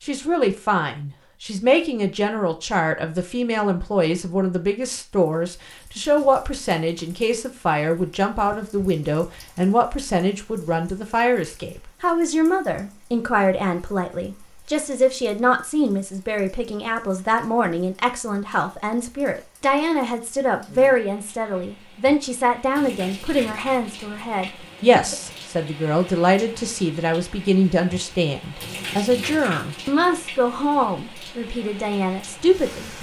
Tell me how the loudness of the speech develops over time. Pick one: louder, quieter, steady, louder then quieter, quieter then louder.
steady.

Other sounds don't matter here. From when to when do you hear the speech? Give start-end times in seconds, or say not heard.
0.0-32.9.